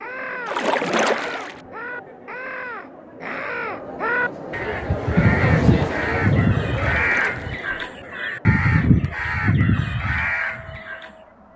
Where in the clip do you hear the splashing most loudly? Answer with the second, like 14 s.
1 s.